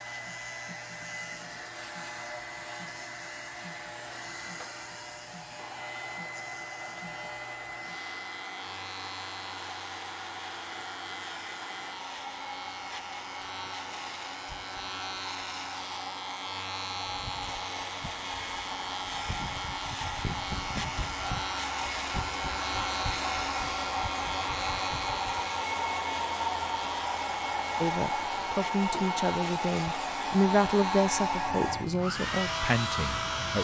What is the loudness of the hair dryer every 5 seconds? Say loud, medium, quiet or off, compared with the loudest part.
medium, medium, medium, medium, loud, loud, loud.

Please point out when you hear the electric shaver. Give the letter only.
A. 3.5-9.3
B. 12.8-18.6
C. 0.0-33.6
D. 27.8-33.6
C.